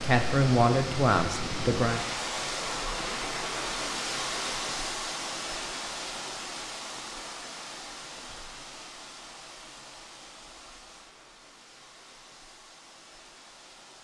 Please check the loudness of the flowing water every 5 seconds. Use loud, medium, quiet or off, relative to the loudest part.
loud, medium, quiet.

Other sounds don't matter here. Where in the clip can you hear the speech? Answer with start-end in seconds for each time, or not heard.
0.0-2.0.